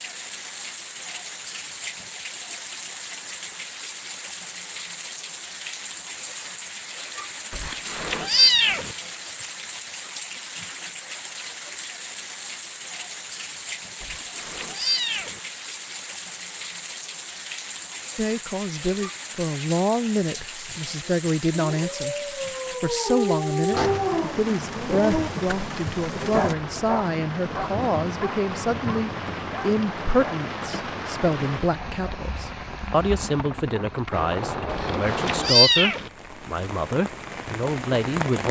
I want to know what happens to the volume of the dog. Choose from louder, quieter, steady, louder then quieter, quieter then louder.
louder then quieter.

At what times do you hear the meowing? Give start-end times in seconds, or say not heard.
7.5-8.9, 14.0-15.4, 34.7-36.1.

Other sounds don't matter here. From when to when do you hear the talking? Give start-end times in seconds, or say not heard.
18.1-22.1, 22.8-38.4.